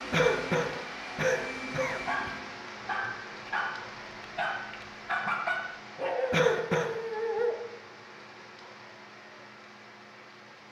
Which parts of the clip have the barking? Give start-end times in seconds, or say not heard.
1.9-7.5.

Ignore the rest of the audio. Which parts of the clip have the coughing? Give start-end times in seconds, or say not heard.
0.1-2.3, 6.3-7.0.